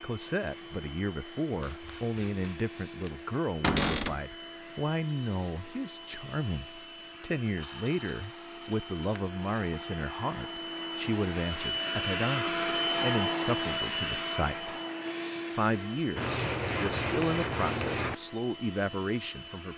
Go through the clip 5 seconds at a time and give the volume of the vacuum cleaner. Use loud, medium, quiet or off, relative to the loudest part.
quiet, quiet, loud, medium.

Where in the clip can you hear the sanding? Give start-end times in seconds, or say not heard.
1.5-3.1, 7.5-9.8, 16.1-18.1.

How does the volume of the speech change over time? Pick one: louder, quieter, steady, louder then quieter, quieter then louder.
steady.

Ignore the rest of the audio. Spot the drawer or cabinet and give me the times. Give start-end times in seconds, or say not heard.
3.6-4.2.